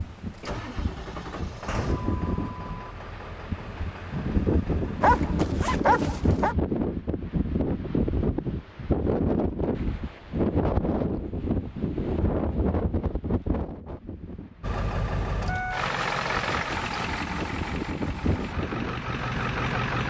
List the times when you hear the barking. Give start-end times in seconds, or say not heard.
5.0-6.5.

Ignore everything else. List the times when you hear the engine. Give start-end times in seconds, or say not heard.
0.0-5.2, 14.6-20.0.